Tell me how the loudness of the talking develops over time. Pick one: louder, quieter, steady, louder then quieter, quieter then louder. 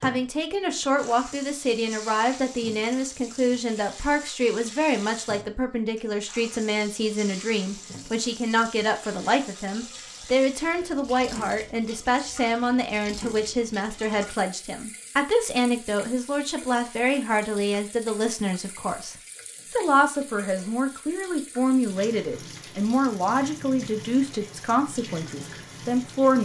steady.